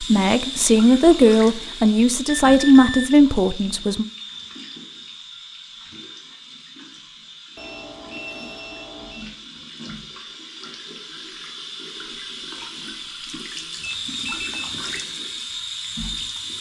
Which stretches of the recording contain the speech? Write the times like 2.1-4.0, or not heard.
0.0-4.0.